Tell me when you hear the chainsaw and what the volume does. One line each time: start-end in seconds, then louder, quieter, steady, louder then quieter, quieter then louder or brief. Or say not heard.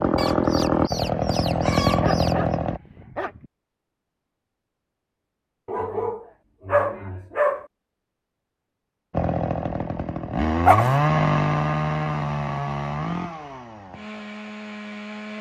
0.0-2.8 brief
9.1-15.3 louder then quieter.